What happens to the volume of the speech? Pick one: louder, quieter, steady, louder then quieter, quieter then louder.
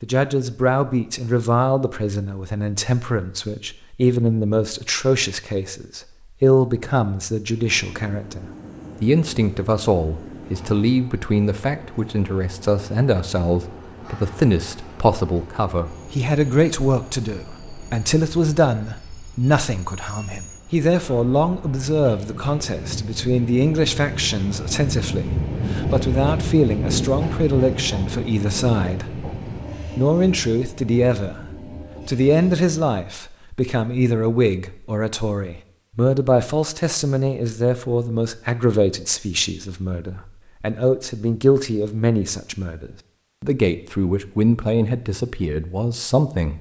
steady.